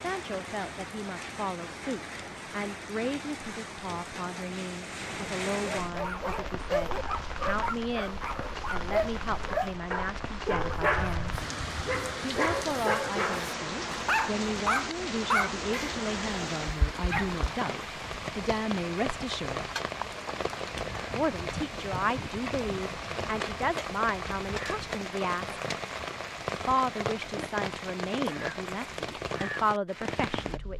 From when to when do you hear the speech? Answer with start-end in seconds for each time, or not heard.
0.0-11.3, 12.2-19.7, 21.1-25.6, 26.6-30.7.